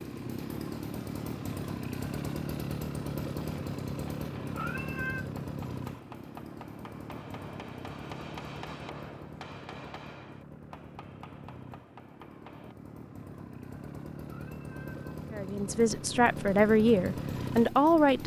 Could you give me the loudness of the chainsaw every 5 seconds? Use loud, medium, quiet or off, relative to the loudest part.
loud, medium, medium, loud.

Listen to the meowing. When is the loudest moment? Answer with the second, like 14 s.
5 s.